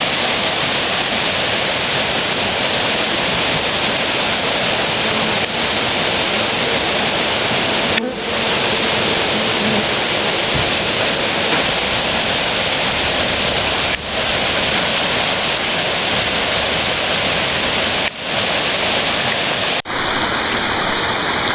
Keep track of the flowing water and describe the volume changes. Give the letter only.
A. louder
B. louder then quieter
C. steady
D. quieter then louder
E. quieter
C.